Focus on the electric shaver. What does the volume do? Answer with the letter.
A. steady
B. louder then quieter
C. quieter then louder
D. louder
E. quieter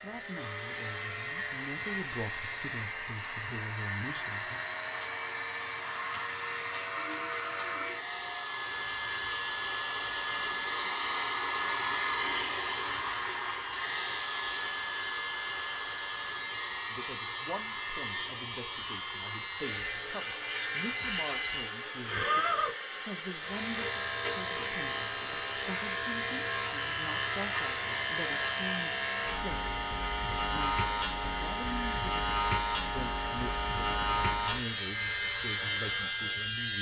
D.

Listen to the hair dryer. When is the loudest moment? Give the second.
12 s.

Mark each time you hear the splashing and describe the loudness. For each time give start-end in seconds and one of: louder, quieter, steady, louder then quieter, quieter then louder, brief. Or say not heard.
not heard.